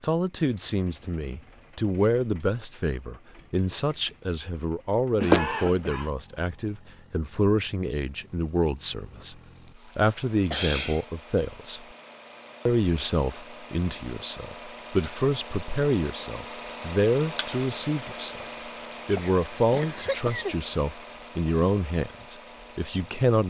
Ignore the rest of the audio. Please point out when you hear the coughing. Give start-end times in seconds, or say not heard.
5.2-6.1, 9.9-11.1, 19.1-20.6.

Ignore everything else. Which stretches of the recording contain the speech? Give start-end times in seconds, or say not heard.
0.0-9.3, 9.9-11.8, 12.7-18.4, 19.1-23.4.